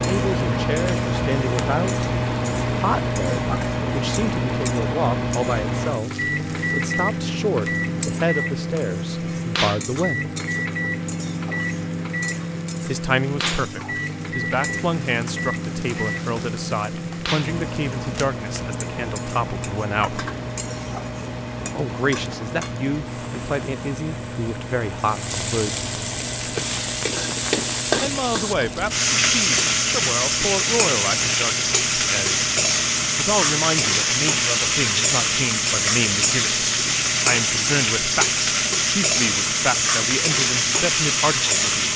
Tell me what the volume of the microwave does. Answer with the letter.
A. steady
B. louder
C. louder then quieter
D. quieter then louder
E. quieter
E.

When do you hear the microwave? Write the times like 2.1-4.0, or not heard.
0.0-41.9.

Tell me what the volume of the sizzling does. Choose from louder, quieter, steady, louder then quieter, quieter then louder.
louder.